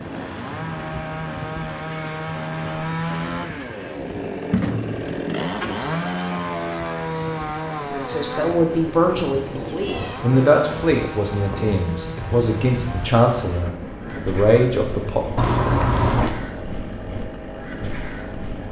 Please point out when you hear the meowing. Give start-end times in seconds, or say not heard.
1.7-3.5, 9.5-10.3, 15.3-16.3.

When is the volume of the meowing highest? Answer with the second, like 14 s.
16 s.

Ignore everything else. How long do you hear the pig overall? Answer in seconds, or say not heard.
not heard.